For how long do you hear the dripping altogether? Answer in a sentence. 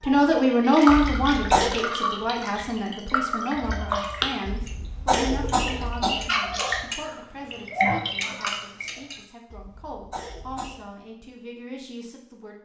You can hear the dripping for 9 seconds altogether.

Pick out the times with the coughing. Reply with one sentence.
You can hear the coughing from 0.8 to 1.8 s, from 4.5 to 6.3 s and from 9.5 to 10.9 s.